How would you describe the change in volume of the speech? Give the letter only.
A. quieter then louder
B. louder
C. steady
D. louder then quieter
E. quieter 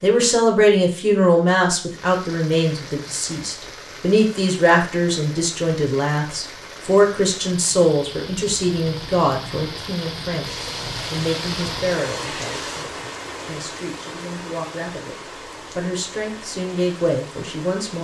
E.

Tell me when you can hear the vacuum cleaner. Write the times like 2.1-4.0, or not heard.
10.4-12.8.